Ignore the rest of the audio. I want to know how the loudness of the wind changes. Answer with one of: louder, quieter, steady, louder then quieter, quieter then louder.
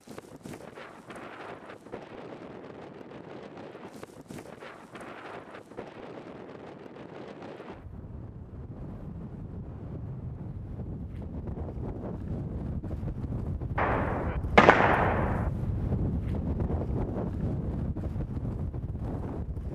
louder.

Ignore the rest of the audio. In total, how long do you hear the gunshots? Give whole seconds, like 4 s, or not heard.
2 s.